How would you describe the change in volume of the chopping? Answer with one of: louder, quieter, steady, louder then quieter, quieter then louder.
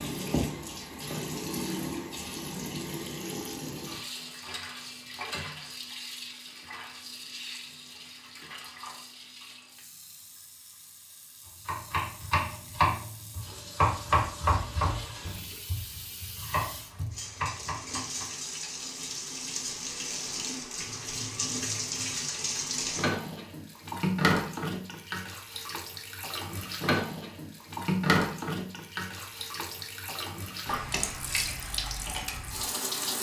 quieter.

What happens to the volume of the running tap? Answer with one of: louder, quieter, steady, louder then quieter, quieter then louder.
quieter then louder.